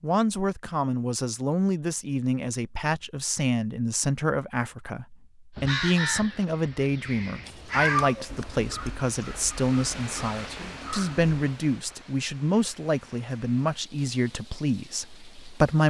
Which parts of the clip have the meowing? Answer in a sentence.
You can hear the meowing from 7.5 to 8.9 s.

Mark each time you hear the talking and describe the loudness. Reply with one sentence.
You can hear the talking from 0.0 to 15.8 s, at a steady volume.